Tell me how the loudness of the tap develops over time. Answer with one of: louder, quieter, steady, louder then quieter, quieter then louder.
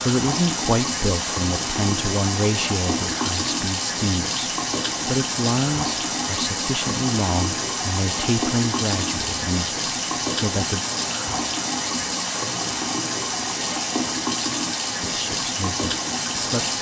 steady.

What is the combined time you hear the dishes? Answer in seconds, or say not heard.
not heard.